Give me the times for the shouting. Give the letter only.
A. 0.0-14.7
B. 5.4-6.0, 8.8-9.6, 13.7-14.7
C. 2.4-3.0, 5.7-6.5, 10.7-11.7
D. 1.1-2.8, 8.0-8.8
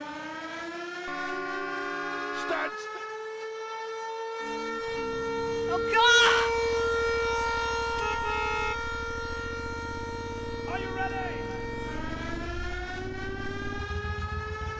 C.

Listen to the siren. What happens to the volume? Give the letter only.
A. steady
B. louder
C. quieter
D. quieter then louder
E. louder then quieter
E.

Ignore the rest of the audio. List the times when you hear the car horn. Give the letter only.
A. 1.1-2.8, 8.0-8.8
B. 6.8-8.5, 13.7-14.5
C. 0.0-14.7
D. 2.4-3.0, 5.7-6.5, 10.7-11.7
A.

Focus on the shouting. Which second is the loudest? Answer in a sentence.
The volume of the shouting peaks at 6 seconds.